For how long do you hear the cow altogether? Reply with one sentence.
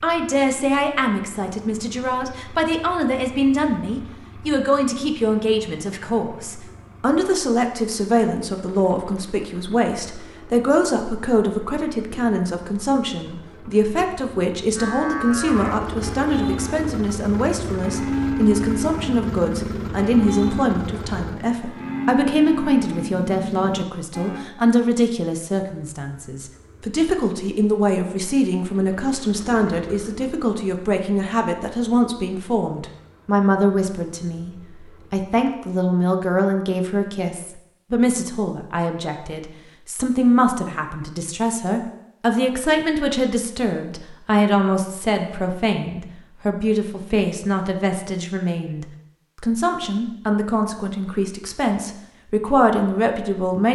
The cow can be heard for 10 seconds in total.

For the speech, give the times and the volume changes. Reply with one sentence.
You can hear the speech from 0.0 to 53.6 s, at a steady volume.